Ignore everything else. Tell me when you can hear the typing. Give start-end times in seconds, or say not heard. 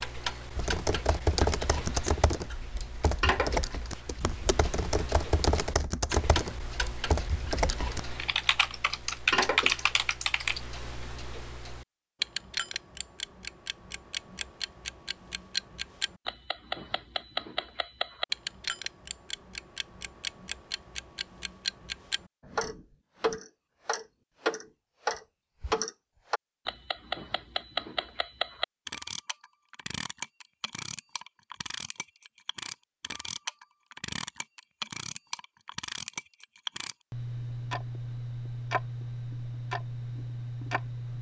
0.6-10.6.